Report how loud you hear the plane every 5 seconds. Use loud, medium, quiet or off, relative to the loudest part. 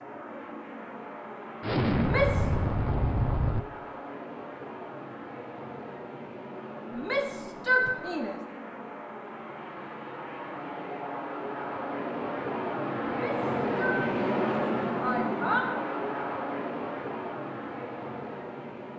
medium, medium, loud, loud.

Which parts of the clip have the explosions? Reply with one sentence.
The explosions can be heard from 1.6 to 3.6 s.